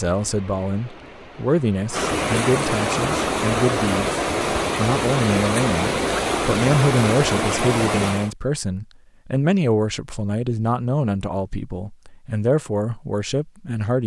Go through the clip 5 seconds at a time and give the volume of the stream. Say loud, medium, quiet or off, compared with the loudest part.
loud, loud, off.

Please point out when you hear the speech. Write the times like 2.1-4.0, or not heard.
0.0-14.0.